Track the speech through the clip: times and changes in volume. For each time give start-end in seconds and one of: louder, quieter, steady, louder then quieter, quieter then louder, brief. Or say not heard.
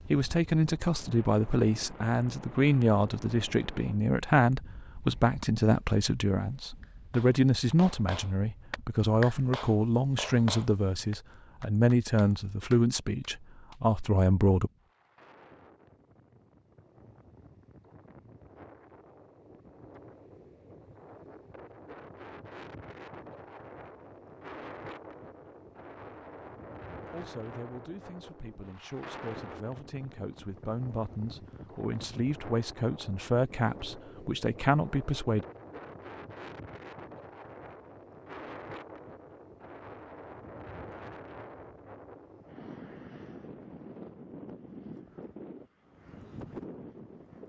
0.1-14.7 steady
27.1-35.5 louder.